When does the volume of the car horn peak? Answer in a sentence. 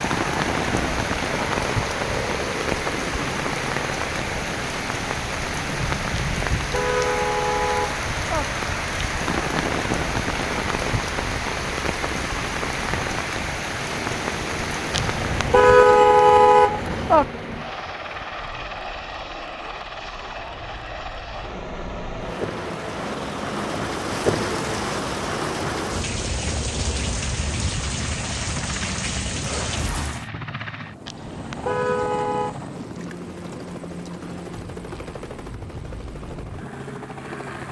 The loudest moment of the car horn is at 16 seconds.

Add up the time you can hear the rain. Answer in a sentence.
You can hear the rain for 30 seconds altogether.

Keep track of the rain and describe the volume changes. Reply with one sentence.
The loudness of the rain goes down, then up.